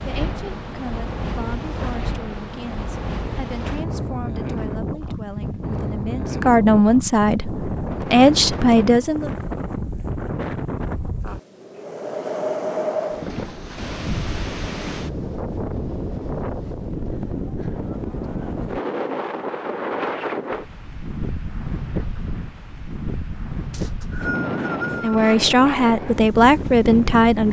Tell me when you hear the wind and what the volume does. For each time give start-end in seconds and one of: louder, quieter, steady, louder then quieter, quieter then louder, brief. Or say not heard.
0.0-27.4 steady.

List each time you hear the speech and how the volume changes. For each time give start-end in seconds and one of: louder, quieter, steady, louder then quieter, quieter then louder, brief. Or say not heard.
0.1-9.3 louder
25.0-27.4 brief.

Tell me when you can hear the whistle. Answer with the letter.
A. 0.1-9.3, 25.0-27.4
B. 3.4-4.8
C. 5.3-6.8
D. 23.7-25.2
D.